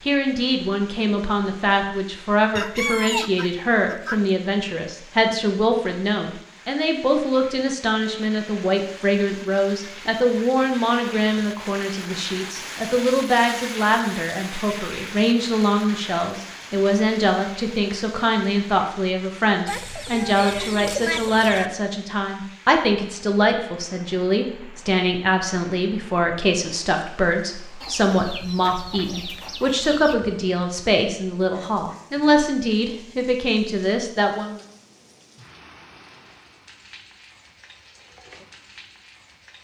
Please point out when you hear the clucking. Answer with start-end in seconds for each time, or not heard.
2.5-4.2, 19.6-21.7, 27.8-30.1.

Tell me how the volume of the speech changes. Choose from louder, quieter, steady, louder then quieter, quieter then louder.
steady.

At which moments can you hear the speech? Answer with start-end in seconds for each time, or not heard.
0.0-34.6.